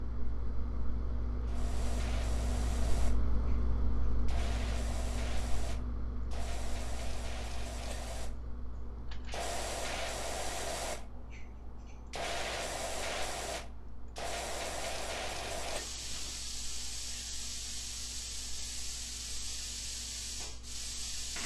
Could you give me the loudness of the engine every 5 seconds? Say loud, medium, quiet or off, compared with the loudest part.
loud, medium, quiet, quiet, medium.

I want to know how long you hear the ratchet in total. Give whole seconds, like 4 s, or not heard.
not heard.